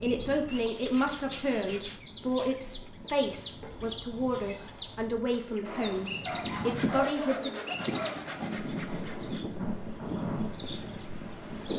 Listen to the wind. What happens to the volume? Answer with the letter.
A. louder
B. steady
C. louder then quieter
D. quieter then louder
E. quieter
A.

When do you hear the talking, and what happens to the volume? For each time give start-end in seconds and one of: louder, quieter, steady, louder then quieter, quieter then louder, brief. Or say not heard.
0.0-7.6 steady.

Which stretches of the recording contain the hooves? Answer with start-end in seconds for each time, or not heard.
not heard.